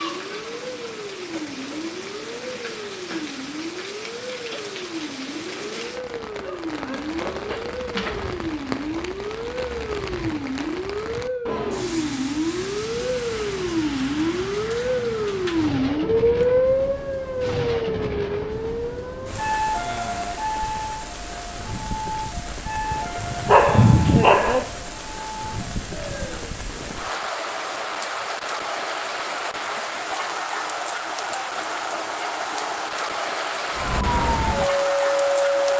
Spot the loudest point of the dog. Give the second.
24 s.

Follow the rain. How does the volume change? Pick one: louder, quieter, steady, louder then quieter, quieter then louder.
louder.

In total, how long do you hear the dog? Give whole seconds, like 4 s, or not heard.
4 s.